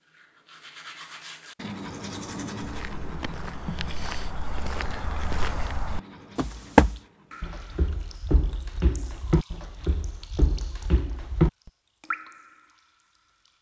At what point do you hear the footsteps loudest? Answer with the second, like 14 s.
7 s.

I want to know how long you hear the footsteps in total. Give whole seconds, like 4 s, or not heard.
9 s.